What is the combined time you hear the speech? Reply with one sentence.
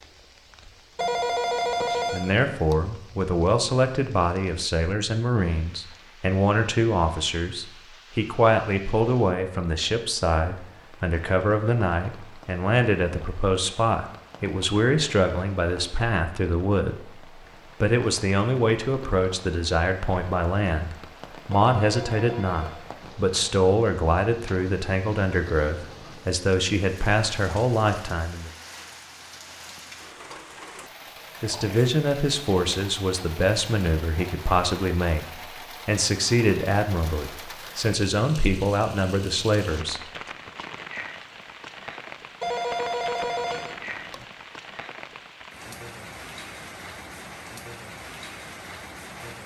You can hear the speech for 35 seconds altogether.